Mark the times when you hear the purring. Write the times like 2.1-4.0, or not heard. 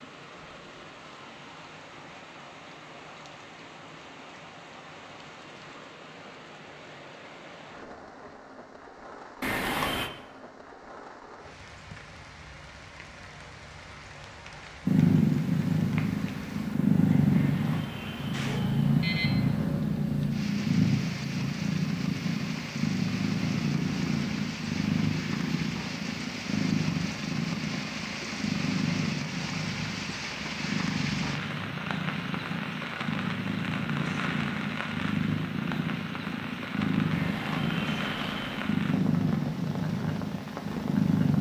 14.8-41.3.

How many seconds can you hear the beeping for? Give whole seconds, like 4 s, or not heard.
5 s.